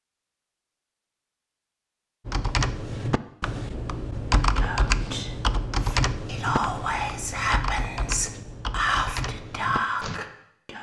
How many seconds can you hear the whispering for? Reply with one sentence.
The whispering can be heard for 6 seconds in total.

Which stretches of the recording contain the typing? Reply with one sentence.
The typing can be heard from 2.2 to 10.2 s.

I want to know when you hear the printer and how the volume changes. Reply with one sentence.
The printer can't be heard in this clip.